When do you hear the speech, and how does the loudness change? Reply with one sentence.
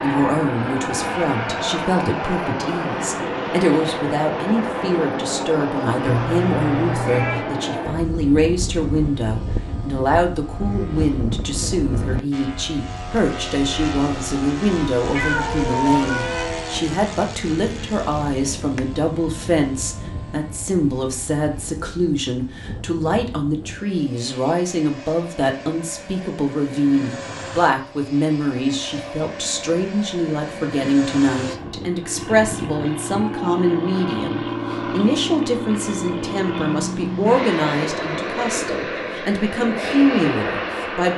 The speech can be heard from 0.0 to 41.1 s, at a steady volume.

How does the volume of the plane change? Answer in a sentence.
The volume of the plane goes down, then up.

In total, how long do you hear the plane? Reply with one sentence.
The plane can be heard for 41 seconds in total.